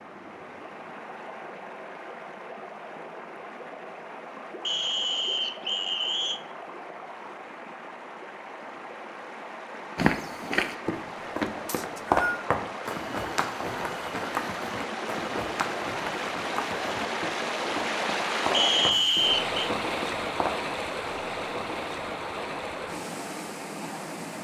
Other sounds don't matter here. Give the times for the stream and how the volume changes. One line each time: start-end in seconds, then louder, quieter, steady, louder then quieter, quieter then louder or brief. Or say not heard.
0.0-24.3 louder.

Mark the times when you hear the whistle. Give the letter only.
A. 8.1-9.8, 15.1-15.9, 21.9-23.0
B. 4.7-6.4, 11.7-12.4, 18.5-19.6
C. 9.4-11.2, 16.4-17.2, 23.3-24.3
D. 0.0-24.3
B.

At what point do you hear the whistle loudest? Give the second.
19 s.